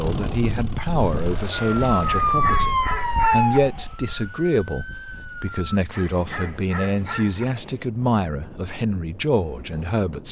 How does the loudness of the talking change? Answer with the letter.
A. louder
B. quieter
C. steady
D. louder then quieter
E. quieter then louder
C.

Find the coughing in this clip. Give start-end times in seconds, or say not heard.
not heard.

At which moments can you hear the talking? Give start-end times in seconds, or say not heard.
0.0-10.2.